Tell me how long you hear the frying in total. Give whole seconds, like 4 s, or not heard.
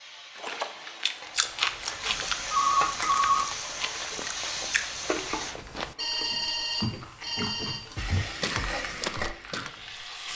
8 s.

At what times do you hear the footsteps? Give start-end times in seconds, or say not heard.
1.2-9.8.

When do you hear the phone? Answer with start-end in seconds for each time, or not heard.
2.0-3.5, 6.0-8.0.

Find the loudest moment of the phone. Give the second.
3 s.